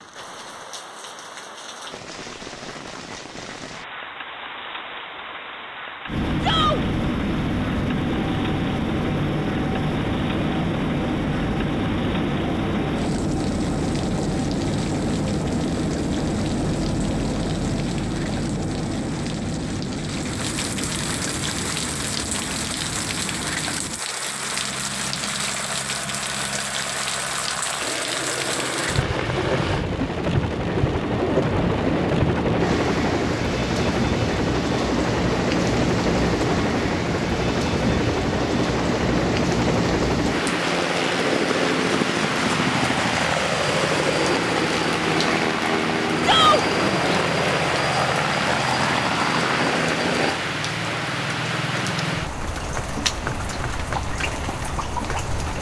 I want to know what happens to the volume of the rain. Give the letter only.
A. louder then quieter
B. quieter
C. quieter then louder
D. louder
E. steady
D.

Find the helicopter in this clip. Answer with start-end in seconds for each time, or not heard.
6.0-50.4.